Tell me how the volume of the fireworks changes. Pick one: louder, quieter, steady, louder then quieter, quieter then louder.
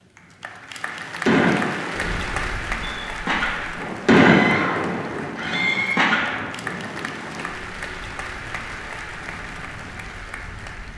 louder then quieter.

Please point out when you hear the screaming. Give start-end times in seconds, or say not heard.
4.2-6.0.